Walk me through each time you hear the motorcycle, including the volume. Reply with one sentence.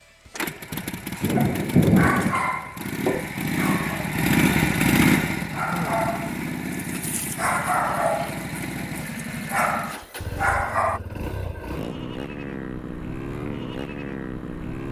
The motorcycle can be heard from 0.0 to 14.8 s, getting louder then quieter.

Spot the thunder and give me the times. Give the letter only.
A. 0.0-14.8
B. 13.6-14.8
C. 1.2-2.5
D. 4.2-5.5
C.